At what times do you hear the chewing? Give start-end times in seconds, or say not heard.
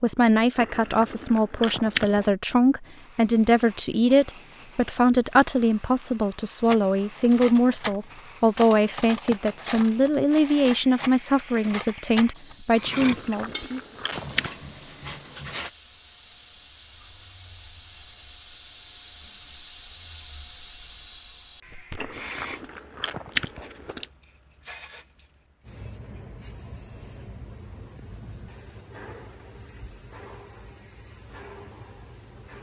0.6-2.2, 12.9-14.5, 21.9-24.1.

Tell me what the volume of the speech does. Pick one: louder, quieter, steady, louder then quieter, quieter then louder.
steady.